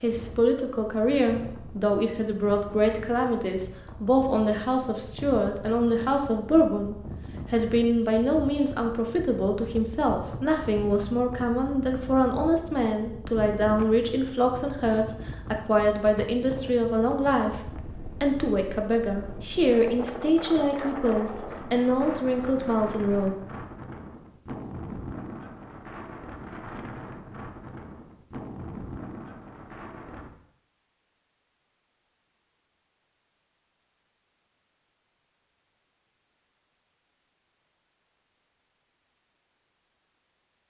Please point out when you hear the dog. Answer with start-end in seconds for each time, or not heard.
not heard.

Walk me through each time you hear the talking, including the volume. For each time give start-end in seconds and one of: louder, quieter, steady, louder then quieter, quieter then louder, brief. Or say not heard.
0.0-23.4 steady.